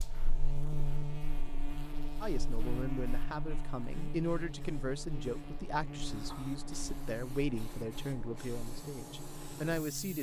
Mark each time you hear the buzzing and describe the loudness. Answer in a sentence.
You can hear the buzzing from 0.0 to 10.1 s, getting quieter.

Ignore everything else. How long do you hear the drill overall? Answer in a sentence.
The drill can't be heard in this clip.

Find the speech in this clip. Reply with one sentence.
The speech can be heard from 2.2 to 10.1 s.